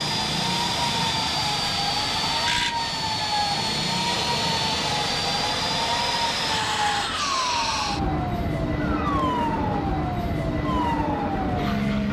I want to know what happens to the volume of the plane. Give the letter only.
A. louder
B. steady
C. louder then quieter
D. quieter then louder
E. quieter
B.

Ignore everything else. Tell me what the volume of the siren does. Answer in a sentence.
The volume of the siren stays about the same.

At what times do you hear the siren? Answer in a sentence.
The siren can be heard from 0.0 to 12.0 s.